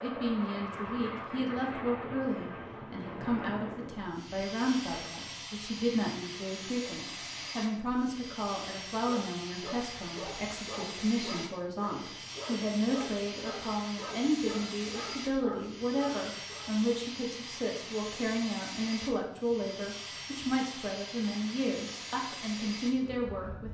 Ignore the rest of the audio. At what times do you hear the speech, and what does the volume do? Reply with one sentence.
The speech can be heard from 0.0 to 23.6 s, at a steady volume.